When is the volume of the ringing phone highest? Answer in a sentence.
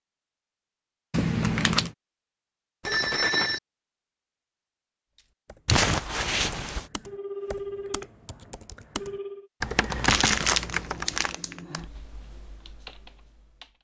The volume of the ringing phone peaks at 3 seconds.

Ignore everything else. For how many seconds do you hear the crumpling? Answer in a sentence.
The crumpling can be heard for 4 seconds in total.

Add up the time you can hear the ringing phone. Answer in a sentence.
You can hear the ringing phone for 3 seconds altogether.